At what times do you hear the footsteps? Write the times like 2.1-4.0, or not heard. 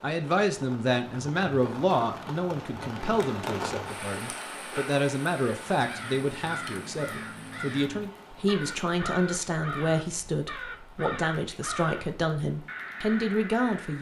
not heard.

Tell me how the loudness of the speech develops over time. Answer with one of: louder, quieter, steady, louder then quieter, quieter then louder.
steady.